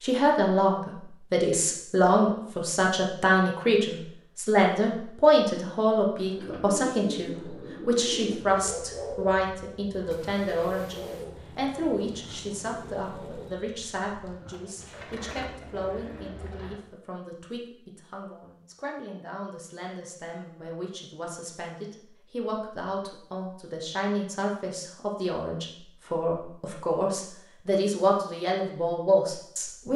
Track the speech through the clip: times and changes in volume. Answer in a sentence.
You can hear the speech from 0.0 to 29.9 s, getting quieter then louder.